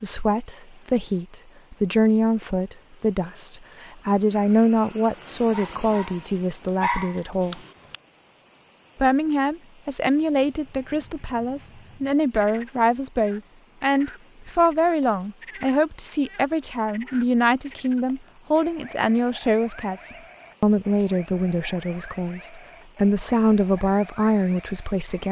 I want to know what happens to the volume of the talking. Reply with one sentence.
The loudness of the talking stays about the same.